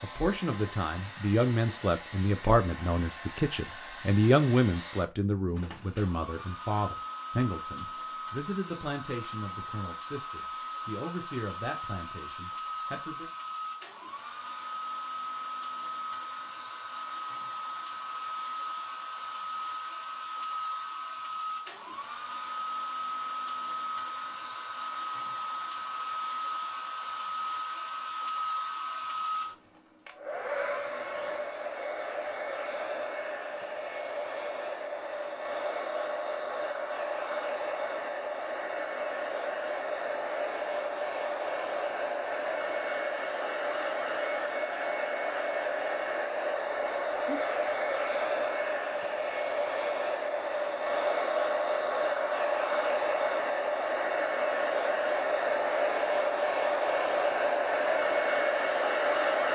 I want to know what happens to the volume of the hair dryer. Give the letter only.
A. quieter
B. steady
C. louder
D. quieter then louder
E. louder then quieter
C.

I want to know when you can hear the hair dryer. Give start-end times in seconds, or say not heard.
0.0-59.4.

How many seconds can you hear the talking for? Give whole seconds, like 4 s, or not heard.
13 s.